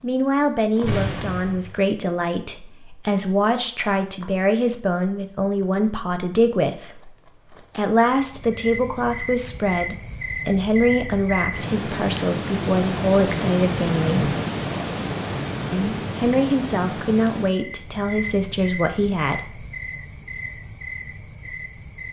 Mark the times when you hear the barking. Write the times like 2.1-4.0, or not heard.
not heard.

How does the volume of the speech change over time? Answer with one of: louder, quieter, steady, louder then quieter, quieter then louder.
steady.